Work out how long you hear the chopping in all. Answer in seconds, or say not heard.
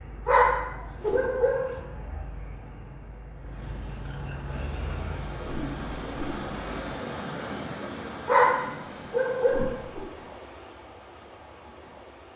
not heard.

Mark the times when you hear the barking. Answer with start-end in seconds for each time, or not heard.
0.2-1.8, 8.2-9.8.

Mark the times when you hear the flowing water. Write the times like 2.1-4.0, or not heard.
4.5-12.3.